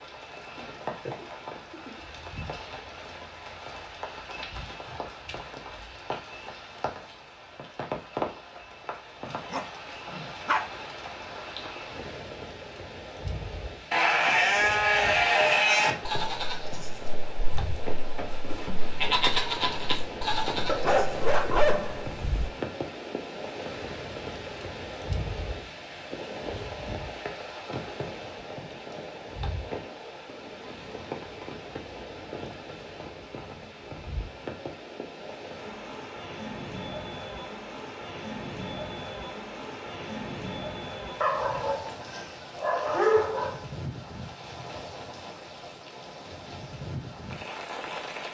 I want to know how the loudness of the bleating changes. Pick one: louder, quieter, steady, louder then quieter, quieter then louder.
quieter then louder.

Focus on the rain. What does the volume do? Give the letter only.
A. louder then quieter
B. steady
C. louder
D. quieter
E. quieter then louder
B.